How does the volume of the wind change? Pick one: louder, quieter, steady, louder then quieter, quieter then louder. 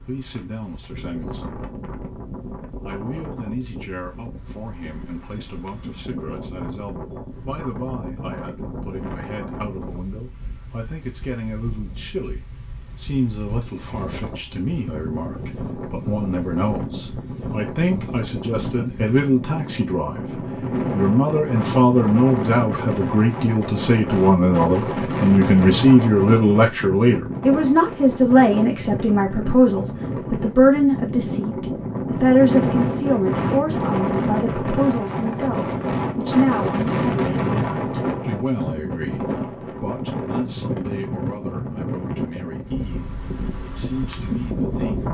louder.